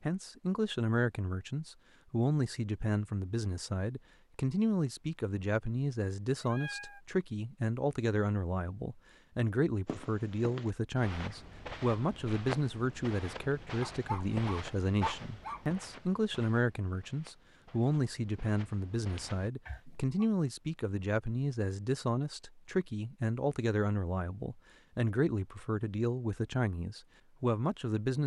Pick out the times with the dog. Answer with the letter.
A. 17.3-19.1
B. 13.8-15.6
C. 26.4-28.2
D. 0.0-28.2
B.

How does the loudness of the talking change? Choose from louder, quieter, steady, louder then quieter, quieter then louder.
steady.